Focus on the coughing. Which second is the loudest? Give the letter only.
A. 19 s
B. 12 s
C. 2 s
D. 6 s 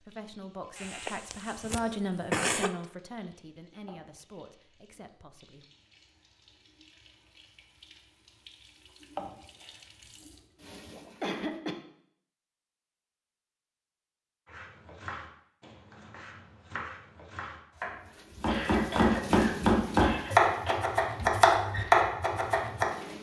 C.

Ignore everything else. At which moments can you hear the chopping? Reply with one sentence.
The chopping can be heard from 14.4 to 22.9 s.